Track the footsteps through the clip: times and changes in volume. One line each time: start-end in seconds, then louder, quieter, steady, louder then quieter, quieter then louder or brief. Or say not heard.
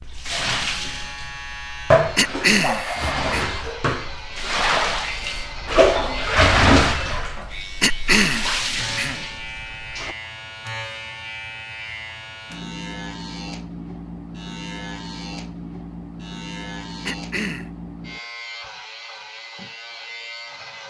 not heard.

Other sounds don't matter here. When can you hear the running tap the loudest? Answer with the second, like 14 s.
6 s.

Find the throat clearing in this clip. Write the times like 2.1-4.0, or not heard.
2.1-3.5, 7.8-9.2, 17.1-17.7.